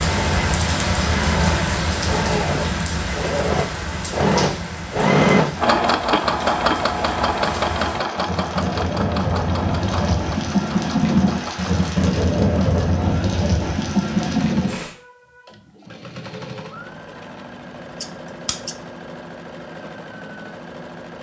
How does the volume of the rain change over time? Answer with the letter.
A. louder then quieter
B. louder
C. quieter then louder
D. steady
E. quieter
C.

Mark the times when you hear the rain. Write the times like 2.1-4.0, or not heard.
0.0-14.9.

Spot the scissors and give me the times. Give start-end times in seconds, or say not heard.
18.0-18.8.